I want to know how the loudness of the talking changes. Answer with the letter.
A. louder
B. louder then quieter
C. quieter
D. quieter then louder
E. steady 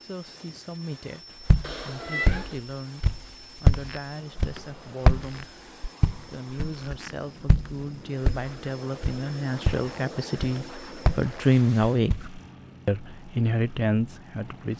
A.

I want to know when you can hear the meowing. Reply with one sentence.
The meowing can be heard from 1.6 to 2.6 s.